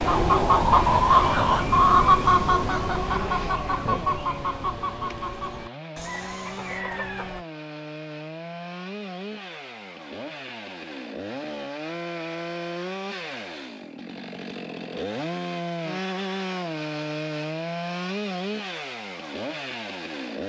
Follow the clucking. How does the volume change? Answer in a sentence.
The volume of the clucking goes down.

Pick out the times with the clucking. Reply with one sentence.
You can hear the clucking from 0.0 to 7.5 s.